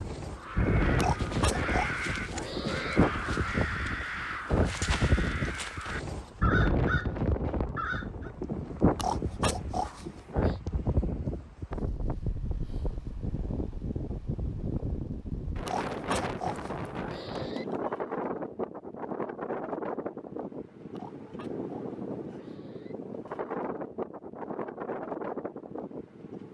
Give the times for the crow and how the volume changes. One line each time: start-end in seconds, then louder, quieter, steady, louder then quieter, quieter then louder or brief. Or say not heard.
0.2-8.3 steady.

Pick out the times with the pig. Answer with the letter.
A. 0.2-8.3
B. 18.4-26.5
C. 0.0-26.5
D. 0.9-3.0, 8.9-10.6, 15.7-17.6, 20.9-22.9
D.